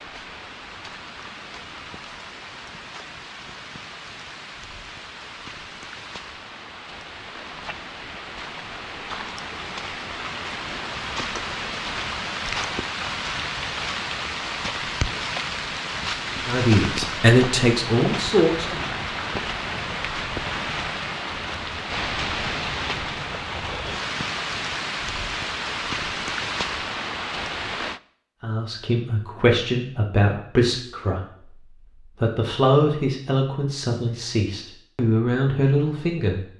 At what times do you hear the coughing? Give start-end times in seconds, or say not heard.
not heard.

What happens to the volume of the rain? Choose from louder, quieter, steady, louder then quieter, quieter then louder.
louder.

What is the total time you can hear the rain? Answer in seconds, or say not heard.
28 s.